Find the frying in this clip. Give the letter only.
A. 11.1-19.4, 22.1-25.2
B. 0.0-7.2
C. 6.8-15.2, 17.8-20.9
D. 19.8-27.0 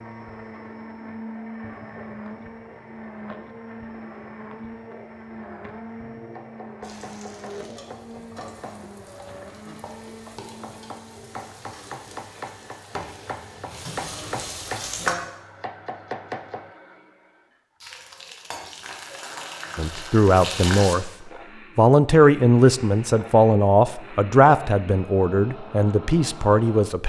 C.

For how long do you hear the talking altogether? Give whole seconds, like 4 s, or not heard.
7 s.